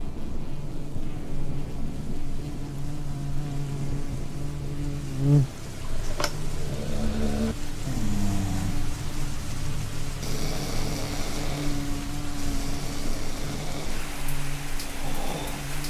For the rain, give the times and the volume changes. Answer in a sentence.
You can hear the rain from 0.0 to 15.8 s, at a steady volume.